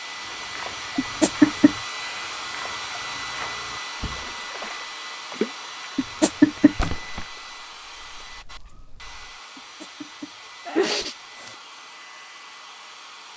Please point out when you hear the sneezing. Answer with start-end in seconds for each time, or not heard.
0.9-1.8, 6.0-6.8, 9.6-11.6.